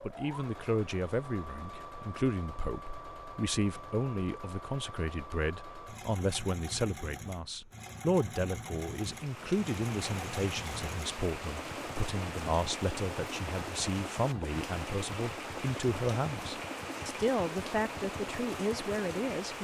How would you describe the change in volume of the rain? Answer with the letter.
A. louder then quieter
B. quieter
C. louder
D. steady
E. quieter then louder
D.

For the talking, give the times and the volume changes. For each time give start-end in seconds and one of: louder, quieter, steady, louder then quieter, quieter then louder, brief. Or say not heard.
0.0-19.5 steady.